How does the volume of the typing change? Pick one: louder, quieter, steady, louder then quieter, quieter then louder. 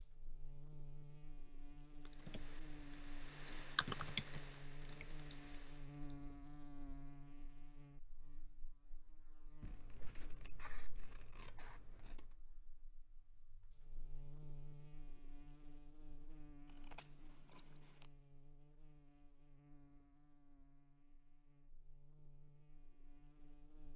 louder then quieter.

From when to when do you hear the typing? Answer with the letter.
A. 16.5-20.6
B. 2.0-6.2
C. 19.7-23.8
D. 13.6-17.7
B.